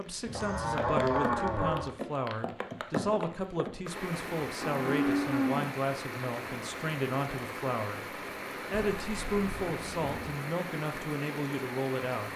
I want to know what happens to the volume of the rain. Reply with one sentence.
The volume of the rain stays about the same.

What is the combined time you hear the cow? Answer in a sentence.
You can hear the cow for 4 seconds altogether.